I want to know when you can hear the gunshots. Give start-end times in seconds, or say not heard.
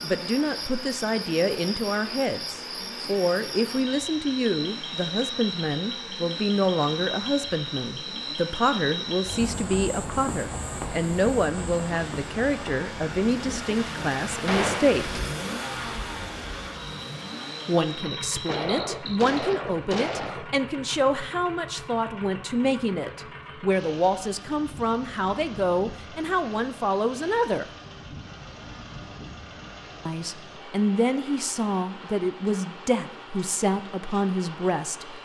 14.4-15.0, 18.4-20.5.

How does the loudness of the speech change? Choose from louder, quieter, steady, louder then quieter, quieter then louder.
steady.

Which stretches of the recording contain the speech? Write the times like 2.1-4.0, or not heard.
0.0-15.2, 17.6-27.6, 30.1-35.1.